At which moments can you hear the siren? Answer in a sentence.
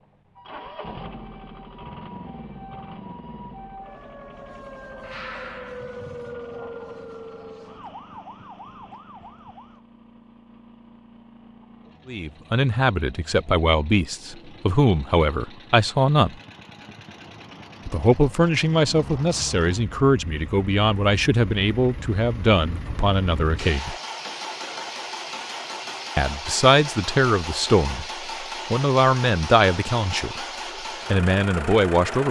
The siren can be heard from 0.1 to 9.8 s.